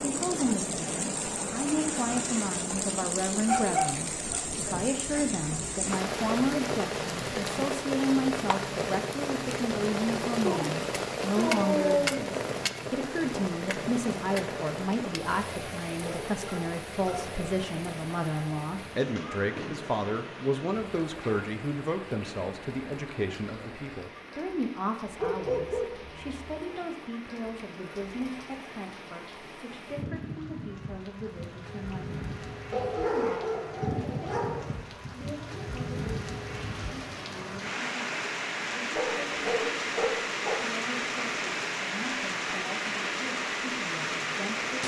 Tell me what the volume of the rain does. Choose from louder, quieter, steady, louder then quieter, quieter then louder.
quieter then louder.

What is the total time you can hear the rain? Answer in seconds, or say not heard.
45 s.